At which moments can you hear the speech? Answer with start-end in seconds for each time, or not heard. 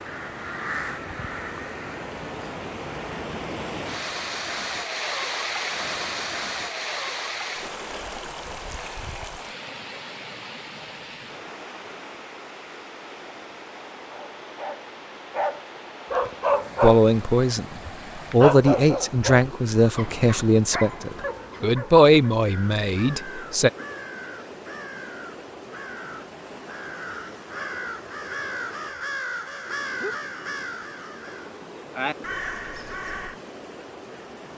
16.8-23.7.